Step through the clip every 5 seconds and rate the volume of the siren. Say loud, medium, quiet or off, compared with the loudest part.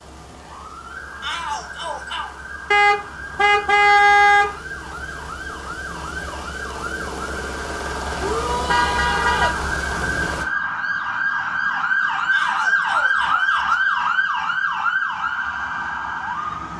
quiet, medium, loud, medium.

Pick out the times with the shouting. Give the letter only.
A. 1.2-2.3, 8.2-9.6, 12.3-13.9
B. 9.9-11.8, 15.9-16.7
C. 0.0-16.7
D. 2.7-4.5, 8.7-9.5
A.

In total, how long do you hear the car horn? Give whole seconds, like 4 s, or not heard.
3 s.